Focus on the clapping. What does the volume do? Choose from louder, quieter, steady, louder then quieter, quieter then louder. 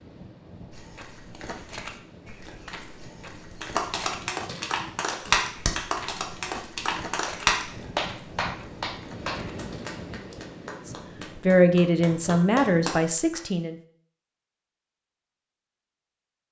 quieter then louder.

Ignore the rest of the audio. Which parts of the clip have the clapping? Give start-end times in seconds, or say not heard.
3.6-13.4.